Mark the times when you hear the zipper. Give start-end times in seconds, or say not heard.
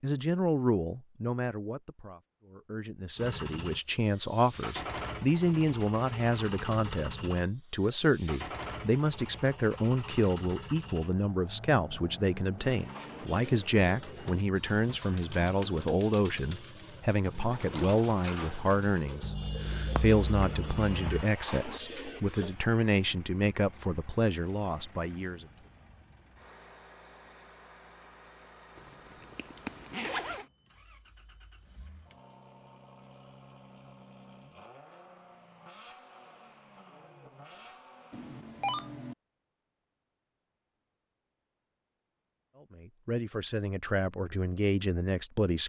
28.8-30.5.